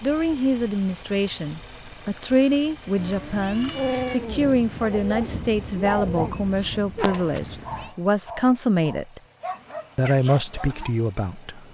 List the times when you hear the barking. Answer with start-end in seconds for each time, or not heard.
3.7-10.9.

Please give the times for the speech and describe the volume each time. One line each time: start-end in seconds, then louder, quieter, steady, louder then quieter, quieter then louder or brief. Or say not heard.
0.0-9.2 steady
9.9-11.6 brief.